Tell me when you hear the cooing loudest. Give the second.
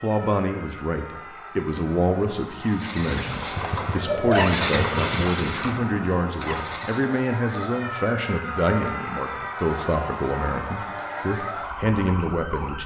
4 s.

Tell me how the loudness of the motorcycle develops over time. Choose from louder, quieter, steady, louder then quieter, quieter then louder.
louder then quieter.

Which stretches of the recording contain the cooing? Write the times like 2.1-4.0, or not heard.
3.0-4.5.